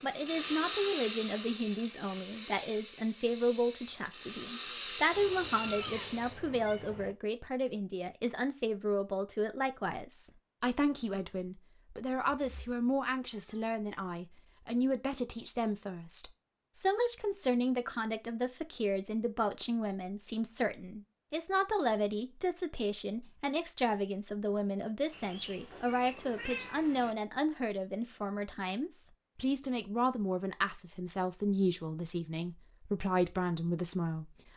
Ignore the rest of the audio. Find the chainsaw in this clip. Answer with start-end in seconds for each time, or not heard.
0.0-6.3.